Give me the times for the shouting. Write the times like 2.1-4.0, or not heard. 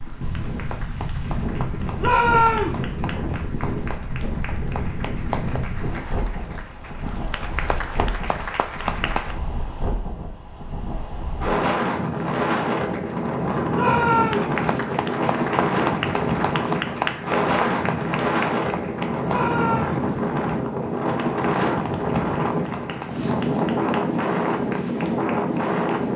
1.9-2.8, 13.7-14.6, 19.2-20.1.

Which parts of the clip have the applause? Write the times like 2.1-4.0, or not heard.
0.0-9.3, 12.7-26.1.